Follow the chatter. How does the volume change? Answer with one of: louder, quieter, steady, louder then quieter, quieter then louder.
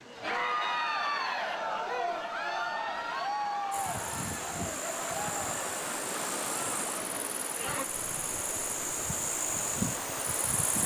quieter.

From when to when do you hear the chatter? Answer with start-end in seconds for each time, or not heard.
0.1-7.8.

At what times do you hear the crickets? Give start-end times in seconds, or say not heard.
3.7-10.8.